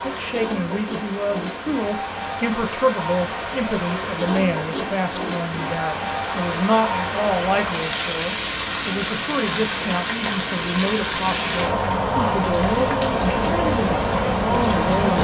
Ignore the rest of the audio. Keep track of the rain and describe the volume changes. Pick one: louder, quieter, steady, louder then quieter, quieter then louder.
louder.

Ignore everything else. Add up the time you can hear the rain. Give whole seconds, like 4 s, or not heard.
15 s.